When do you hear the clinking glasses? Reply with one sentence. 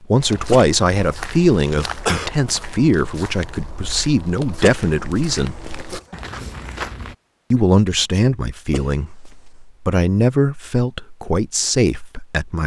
The clinking glasses can't be heard in this clip.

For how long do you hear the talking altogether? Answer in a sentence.
The talking can be heard for 11 seconds in total.